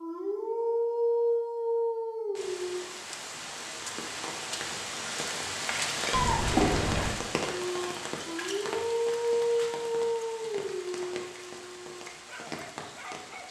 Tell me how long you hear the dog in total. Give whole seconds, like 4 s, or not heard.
9 s.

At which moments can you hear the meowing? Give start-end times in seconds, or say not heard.
6.1-7.2.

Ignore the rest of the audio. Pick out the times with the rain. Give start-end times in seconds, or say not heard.
2.4-13.4.